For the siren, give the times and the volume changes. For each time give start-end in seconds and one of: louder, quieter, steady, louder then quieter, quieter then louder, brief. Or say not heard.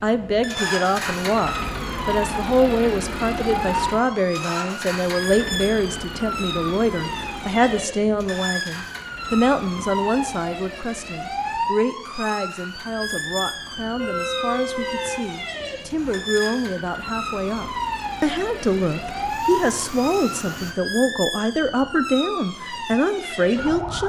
0.0-24.0 steady.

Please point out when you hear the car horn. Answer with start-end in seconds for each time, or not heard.
13.9-15.3.